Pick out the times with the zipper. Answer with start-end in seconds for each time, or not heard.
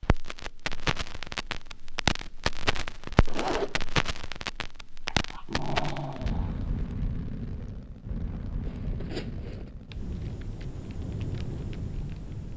3.2-3.8, 8.7-9.7.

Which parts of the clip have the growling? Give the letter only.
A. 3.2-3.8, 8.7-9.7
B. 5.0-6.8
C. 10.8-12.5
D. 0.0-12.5
B.